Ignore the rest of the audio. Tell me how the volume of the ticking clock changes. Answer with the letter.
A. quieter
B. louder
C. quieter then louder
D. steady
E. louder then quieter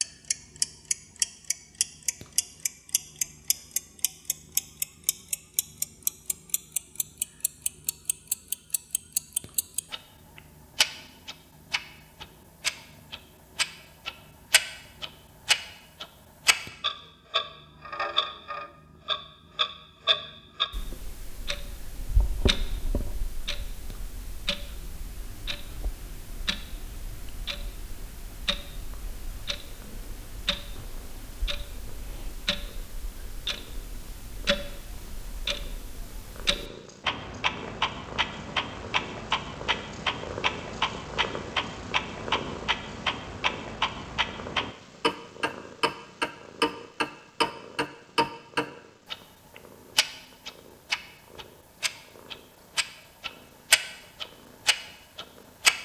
C.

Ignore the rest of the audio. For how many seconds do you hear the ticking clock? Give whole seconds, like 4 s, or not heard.
56 s.